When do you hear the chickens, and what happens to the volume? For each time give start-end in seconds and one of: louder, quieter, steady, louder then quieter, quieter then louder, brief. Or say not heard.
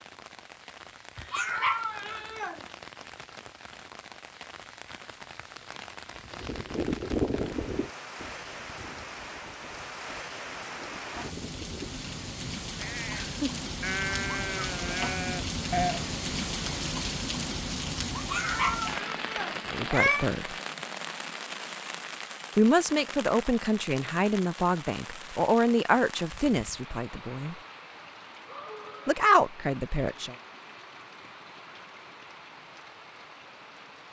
not heard.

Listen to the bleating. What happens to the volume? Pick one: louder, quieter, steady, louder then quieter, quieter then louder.
quieter then louder.